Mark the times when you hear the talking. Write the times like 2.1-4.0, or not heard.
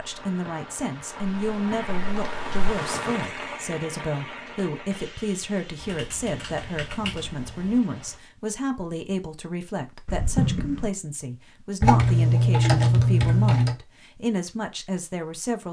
0.0-15.6.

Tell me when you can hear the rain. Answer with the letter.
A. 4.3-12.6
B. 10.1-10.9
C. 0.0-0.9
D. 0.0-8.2
D.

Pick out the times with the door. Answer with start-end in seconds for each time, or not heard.
10.1-10.9.